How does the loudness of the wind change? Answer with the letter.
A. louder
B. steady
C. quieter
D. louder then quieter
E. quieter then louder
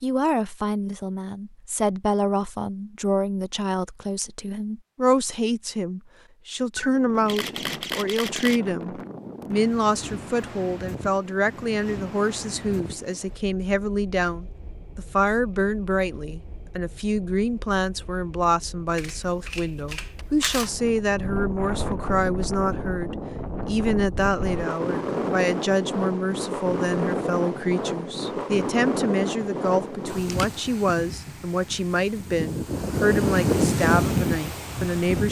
E.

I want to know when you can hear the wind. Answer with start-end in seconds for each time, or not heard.
6.8-35.2.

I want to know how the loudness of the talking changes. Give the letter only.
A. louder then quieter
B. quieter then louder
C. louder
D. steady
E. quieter
D.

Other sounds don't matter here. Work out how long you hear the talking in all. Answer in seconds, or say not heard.
35 s.